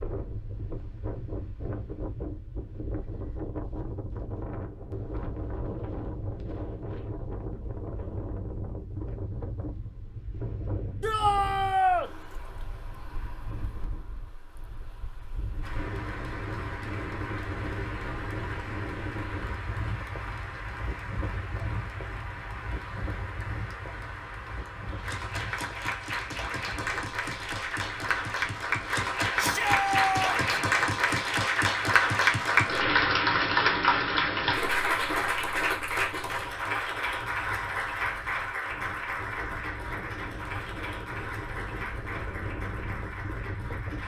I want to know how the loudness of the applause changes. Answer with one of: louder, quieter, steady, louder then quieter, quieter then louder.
louder then quieter.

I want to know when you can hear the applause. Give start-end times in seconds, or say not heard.
15.6-44.0.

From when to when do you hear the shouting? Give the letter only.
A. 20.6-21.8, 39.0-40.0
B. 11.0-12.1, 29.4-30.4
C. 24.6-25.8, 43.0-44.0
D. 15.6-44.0
B.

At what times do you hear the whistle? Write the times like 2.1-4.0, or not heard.
not heard.